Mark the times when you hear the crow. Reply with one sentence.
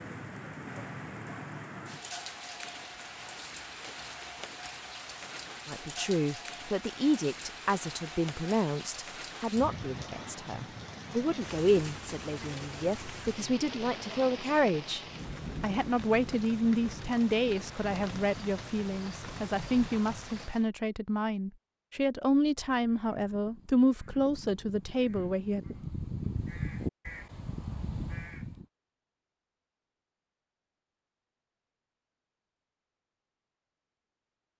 The crow can be heard from 22.6 to 28.6 s.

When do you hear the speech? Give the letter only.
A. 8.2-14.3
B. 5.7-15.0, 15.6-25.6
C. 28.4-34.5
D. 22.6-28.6
B.